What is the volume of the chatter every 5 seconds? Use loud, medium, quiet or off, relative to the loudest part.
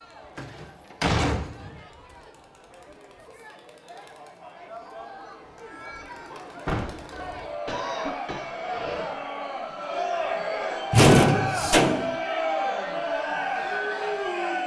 quiet, medium, loud.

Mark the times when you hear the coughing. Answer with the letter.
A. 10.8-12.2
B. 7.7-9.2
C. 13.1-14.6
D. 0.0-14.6
B.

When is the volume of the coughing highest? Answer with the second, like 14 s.
8 s.